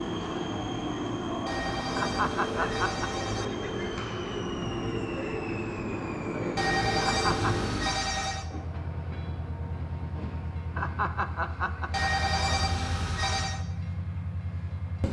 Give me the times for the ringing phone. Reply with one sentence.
The ringing phone can be heard from 1.4 to 3.5 s, from 6.5 to 8.5 s and from 11.9 to 13.6 s.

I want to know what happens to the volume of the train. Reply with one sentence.
The loudness of the train goes down.